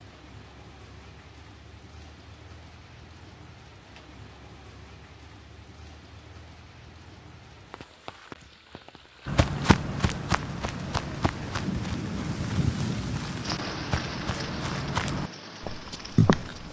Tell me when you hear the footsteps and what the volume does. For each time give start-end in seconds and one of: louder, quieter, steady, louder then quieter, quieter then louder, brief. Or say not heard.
9.2-16.6 quieter then louder.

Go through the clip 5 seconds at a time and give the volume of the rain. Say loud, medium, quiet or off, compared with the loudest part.
quiet, quiet, loud, medium.